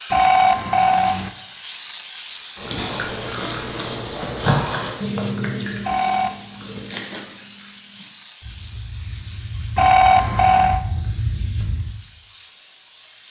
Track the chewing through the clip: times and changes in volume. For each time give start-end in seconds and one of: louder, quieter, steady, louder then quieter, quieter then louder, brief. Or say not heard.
2.5-11.9 quieter then louder.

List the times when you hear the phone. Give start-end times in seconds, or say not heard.
0.1-1.3, 5.8-6.4, 9.8-10.8.